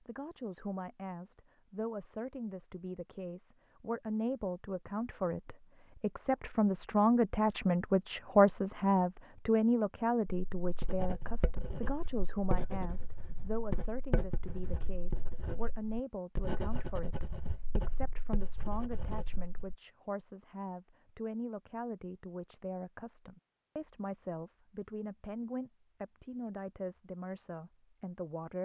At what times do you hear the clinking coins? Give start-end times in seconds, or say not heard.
not heard.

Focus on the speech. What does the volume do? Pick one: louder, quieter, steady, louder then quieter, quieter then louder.
louder then quieter.